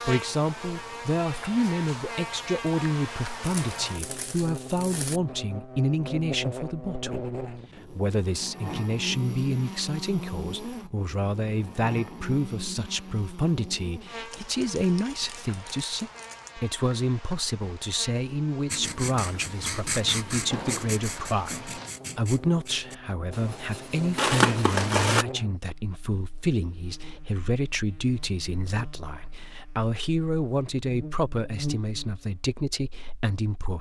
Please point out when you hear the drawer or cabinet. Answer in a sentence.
The drawer or cabinet can be heard from 20.5 to 21.9 s.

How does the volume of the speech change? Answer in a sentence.
The loudness of the speech stays about the same.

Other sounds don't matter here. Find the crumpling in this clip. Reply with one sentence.
You can hear the crumpling from 3.4 to 5.2 s, from 14.3 to 16.5 s and from 24.1 to 25.2 s.